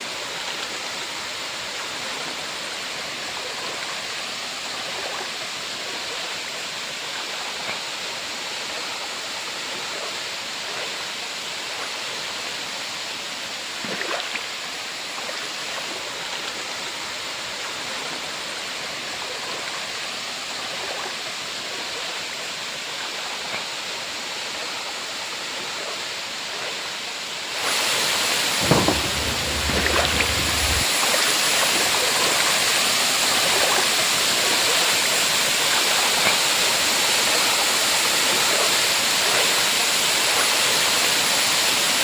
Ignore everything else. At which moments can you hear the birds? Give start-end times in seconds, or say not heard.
not heard.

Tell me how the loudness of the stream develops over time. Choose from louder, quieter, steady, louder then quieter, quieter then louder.
louder.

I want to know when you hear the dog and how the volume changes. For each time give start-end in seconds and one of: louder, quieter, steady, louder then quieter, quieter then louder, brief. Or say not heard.
not heard.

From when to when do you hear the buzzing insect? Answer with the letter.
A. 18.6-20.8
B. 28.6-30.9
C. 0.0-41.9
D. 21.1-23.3
B.